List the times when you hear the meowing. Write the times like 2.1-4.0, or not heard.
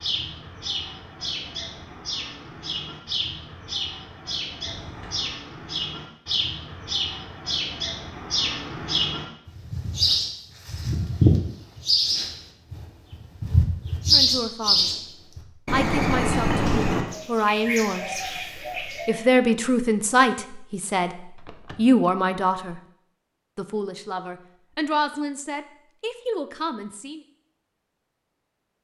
not heard.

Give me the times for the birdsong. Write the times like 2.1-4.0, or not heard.
0.0-19.2.